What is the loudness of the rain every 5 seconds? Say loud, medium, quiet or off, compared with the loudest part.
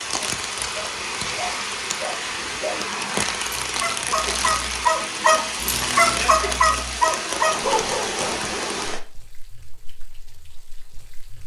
loud, loud, quiet.